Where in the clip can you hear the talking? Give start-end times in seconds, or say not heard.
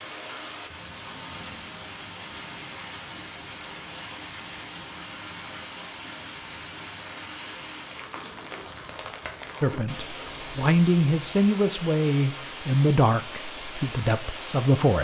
9.6-14.9.